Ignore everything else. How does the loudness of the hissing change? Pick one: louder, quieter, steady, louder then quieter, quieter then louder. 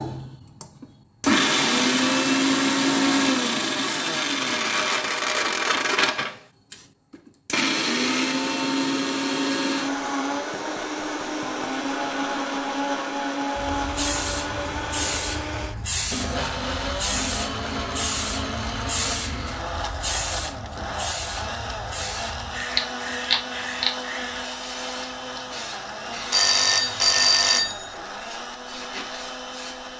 quieter.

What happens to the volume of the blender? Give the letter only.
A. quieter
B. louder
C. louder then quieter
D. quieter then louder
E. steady
A.